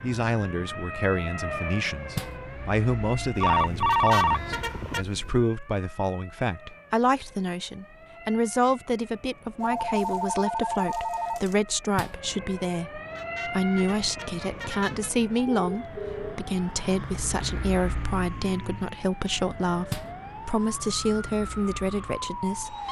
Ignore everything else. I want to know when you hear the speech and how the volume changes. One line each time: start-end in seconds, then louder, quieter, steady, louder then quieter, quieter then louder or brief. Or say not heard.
0.0-22.8 steady.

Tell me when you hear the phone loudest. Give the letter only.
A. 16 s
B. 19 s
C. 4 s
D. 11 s
C.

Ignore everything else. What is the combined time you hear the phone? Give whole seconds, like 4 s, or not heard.
5 s.